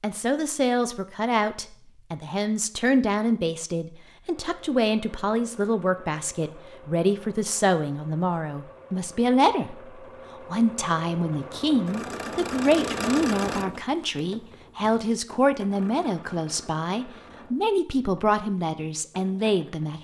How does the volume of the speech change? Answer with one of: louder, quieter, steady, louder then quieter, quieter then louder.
steady.